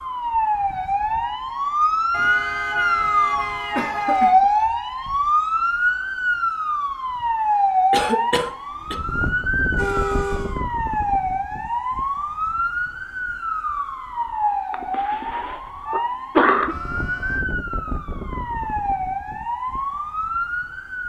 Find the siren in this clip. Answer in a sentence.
You can hear the siren from 0.0 to 21.0 s.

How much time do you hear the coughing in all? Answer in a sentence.
The coughing can be heard for 5 seconds in total.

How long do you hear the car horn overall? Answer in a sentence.
The car horn can be heard for 4 seconds in total.